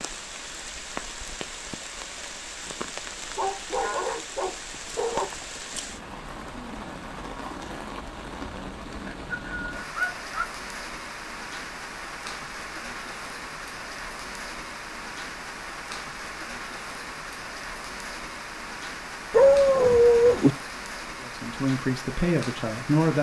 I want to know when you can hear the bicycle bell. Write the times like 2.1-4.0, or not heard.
not heard.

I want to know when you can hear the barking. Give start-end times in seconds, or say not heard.
3.4-5.2, 9.1-10.5, 19.3-20.6.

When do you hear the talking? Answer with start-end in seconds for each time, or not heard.
21.2-23.1.